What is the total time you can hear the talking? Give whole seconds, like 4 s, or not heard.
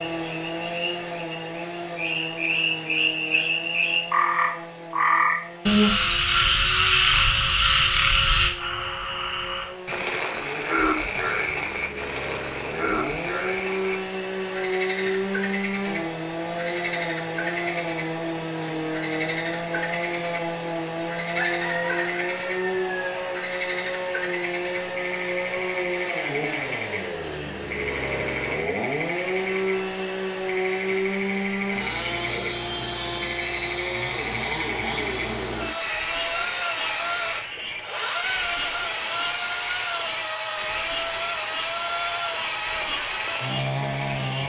not heard.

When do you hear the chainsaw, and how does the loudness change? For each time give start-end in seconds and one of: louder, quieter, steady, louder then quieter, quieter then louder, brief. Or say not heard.
0.0-44.4 louder.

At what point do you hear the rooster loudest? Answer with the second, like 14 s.
22 s.